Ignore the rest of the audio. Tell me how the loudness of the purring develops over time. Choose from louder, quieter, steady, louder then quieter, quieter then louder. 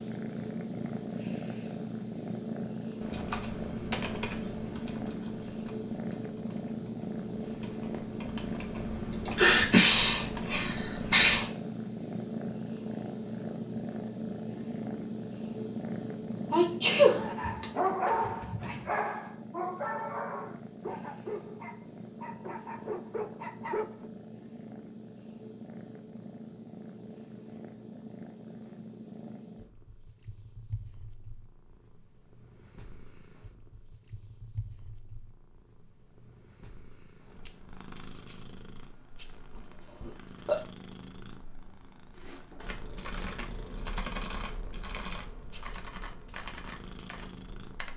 quieter.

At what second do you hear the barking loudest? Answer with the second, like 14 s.
18 s.